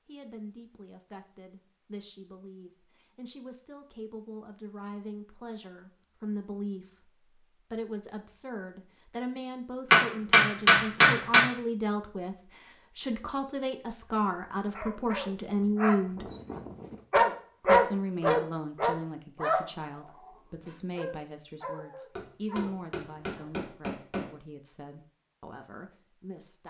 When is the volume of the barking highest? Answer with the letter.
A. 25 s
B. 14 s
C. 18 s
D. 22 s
C.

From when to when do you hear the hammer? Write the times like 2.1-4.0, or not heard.
9.9-11.4, 22.1-24.4.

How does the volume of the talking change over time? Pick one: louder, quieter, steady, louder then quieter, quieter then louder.
louder then quieter.